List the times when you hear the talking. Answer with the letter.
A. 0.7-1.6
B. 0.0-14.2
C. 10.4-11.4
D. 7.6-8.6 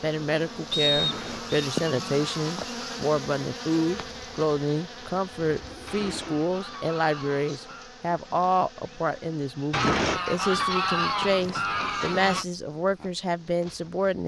B.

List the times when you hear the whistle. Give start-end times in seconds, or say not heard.
0.7-1.6.